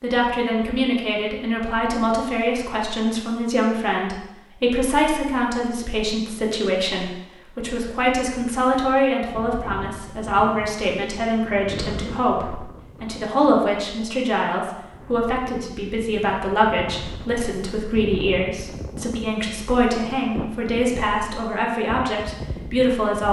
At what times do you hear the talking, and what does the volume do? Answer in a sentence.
The talking can be heard from 0.0 to 23.2 s, at a steady volume.